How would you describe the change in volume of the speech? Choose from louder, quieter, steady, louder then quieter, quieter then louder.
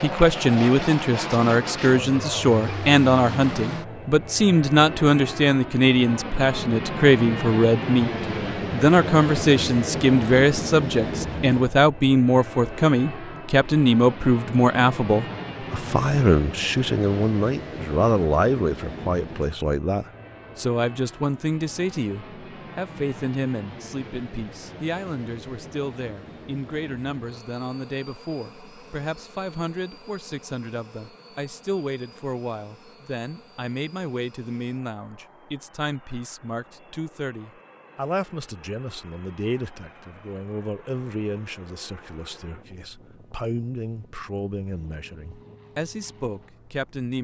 quieter.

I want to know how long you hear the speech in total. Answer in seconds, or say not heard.
47 s.